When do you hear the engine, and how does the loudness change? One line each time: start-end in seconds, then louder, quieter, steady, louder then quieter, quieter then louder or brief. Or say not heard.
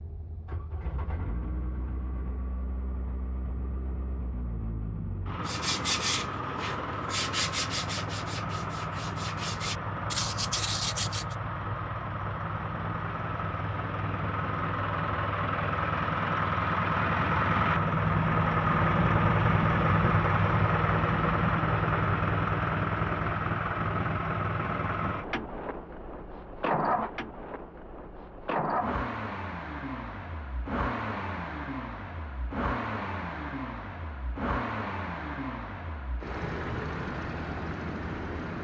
0.0-38.5 louder then quieter.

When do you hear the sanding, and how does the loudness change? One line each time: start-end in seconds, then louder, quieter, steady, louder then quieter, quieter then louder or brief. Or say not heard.
5.5-11.3 quieter then louder.